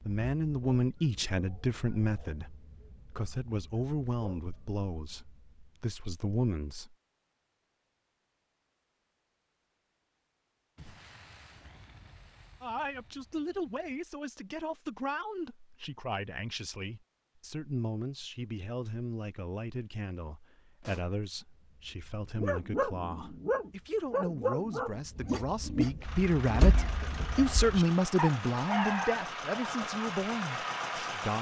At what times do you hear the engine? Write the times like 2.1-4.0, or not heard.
26.0-31.3.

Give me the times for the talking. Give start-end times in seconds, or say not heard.
0.0-7.0, 12.6-31.3.